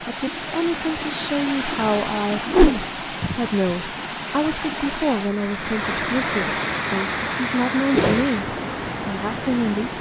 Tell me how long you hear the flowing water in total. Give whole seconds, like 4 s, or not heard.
10 s.